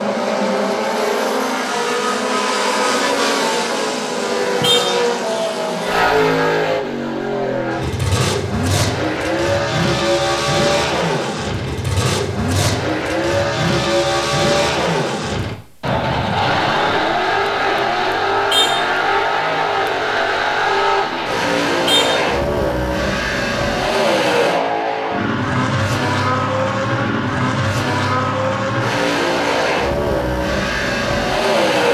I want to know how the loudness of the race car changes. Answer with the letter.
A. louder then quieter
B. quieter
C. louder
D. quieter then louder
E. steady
E.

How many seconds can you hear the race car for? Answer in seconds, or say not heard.
32 s.